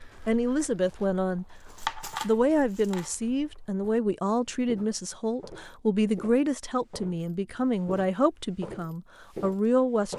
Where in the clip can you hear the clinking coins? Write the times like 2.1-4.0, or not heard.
1.5-3.1.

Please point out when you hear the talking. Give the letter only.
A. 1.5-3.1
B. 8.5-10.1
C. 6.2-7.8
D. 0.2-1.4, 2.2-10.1
D.